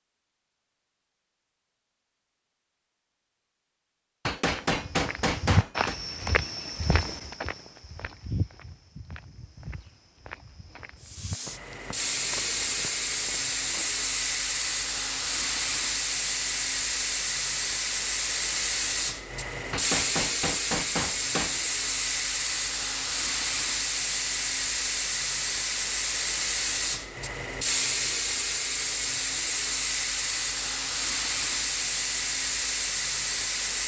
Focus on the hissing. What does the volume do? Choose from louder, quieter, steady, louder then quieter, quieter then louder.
steady.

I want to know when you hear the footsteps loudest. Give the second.
6 s.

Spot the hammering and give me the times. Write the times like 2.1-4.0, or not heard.
4.2-6.0, 19.7-21.6.